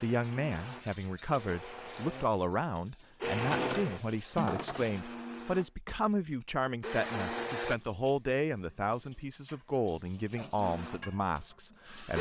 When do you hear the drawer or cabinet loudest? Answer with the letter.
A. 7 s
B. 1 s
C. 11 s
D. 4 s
D.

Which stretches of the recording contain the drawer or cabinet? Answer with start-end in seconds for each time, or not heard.
3.3-5.0.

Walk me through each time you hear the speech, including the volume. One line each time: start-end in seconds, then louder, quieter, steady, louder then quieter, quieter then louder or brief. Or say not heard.
0.0-12.1 steady.